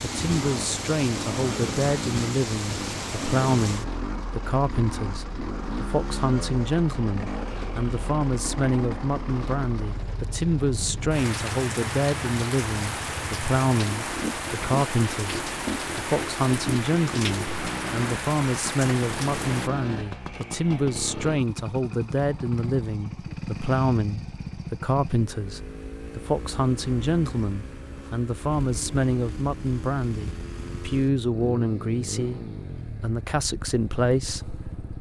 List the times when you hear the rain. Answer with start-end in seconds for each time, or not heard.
0.0-19.7.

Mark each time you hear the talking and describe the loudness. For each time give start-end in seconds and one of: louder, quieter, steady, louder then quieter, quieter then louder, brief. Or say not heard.
0.0-34.9 steady.